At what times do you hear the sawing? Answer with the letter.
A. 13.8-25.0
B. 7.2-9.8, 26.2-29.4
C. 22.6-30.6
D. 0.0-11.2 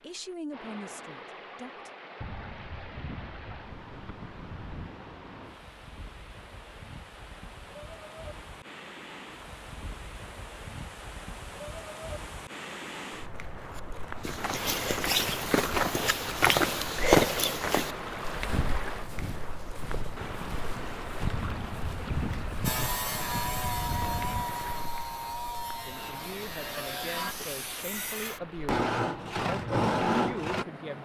C.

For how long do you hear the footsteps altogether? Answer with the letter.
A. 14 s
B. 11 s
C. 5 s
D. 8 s
B.